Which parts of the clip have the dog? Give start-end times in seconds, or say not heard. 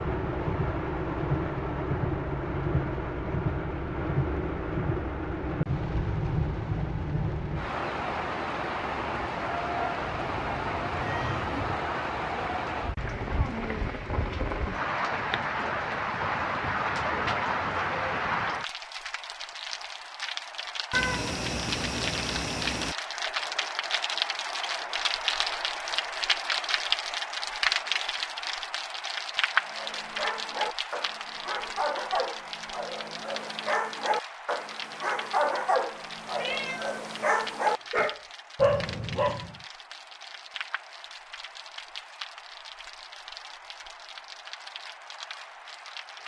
29.6-39.5.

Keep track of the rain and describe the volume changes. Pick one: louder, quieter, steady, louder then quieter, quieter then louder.
quieter.